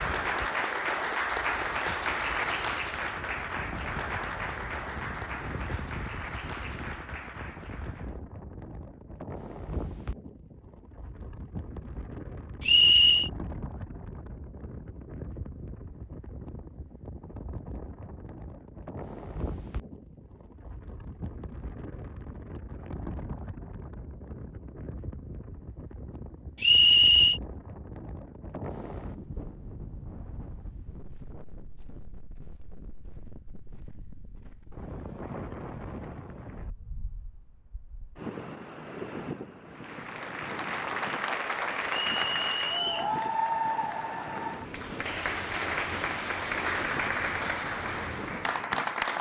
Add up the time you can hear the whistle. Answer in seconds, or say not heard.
3 s.